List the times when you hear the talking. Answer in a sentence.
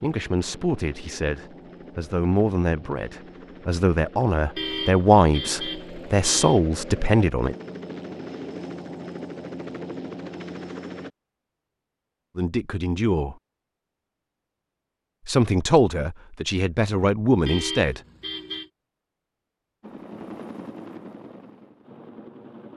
You can hear the talking from 0.0 to 7.5 s, from 12.3 to 13.3 s and from 15.2 to 18.0 s.